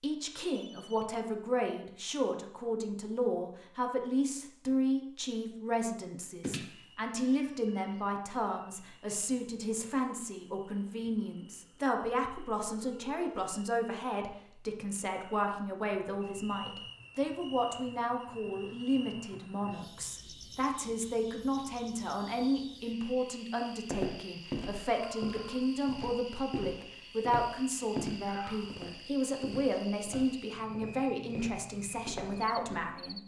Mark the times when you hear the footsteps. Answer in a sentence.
You can hear the footsteps from 23.8 to 32.8 s.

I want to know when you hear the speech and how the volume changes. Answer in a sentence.
You can hear the speech from 0.0 to 33.2 s, at a steady volume.